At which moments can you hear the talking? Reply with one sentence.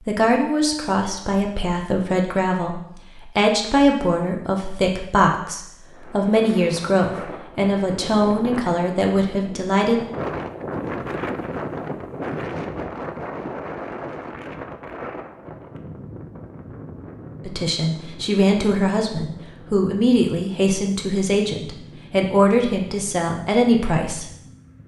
You can hear the talking from 0.0 to 10.0 s and from 17.4 to 24.2 s.